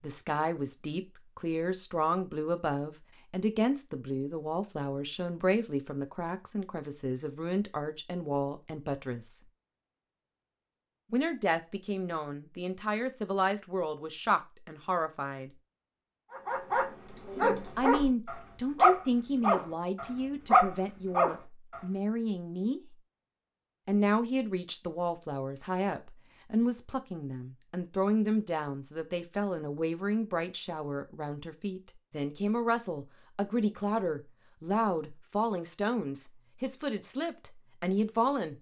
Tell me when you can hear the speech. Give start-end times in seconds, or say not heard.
0.0-9.4, 11.1-15.5, 17.8-22.8, 23.9-38.5.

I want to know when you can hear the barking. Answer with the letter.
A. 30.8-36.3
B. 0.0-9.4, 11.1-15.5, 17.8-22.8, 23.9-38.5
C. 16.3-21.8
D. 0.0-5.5
C.